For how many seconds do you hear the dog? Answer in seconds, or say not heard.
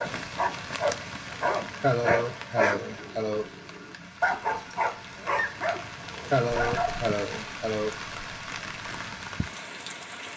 7 s.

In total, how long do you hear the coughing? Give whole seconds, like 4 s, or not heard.
3 s.